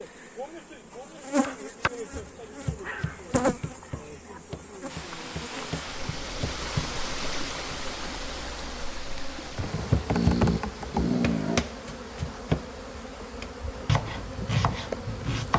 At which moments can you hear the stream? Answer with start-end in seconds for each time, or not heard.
4.8-15.3.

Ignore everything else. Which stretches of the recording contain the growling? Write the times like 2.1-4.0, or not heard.
2.8-4.4, 10.1-11.7.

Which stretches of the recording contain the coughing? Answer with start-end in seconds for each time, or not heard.
not heard.